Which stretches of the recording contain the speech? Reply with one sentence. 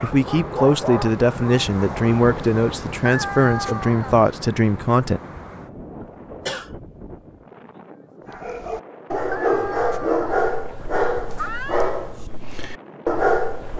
You can hear the speech from 0.0 to 5.2 s.